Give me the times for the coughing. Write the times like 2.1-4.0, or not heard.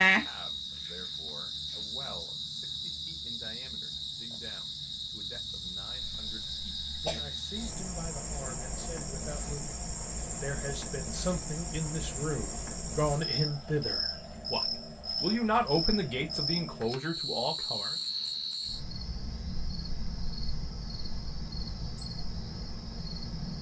6.0-7.2.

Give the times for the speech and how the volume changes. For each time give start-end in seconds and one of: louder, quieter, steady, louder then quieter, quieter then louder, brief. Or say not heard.
0.1-17.9 louder.